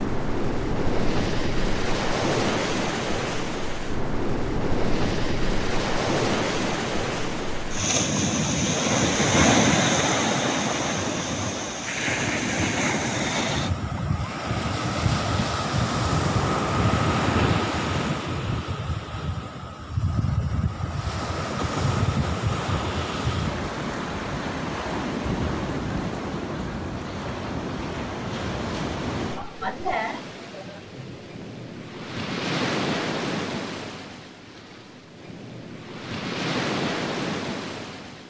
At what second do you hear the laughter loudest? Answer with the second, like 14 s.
30 s.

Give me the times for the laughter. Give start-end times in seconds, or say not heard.
29.4-31.6.